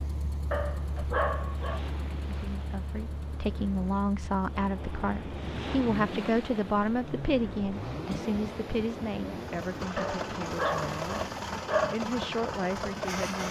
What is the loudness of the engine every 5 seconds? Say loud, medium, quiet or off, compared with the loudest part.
medium, medium, loud.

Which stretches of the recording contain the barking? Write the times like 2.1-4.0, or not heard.
0.5-1.8, 9.9-12.0.